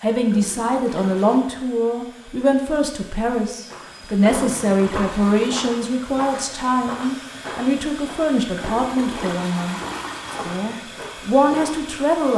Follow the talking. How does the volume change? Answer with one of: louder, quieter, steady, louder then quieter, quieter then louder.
steady.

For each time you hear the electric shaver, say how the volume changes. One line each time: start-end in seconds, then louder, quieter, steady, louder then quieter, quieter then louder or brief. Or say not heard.
not heard.